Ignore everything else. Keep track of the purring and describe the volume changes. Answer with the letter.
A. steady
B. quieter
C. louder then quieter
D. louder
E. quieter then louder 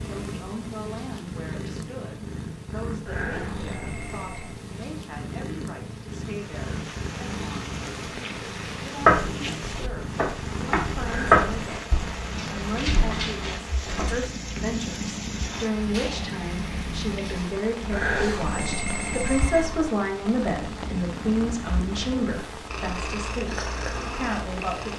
A.